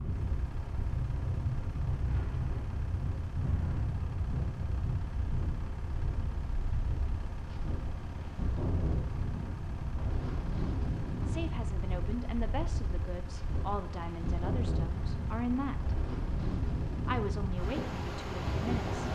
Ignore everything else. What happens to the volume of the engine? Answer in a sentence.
The volume of the engine stays about the same.